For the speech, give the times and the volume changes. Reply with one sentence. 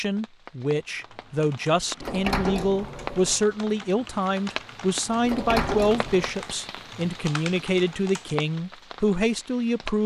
You can hear the speech from 0.0 to 10.0 s, at a steady volume.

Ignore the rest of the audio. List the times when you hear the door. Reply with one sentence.
The door can be heard from 2.0 to 3.4 s and from 5.2 to 6.4 s.